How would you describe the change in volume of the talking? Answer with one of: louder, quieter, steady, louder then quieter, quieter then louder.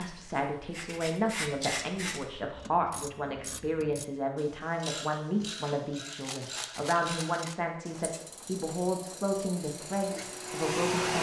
steady.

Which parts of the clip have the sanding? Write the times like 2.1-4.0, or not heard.
0.0-2.5.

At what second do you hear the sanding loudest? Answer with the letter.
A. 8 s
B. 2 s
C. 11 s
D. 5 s
B.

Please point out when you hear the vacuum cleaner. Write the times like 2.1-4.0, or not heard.
9.7-11.1.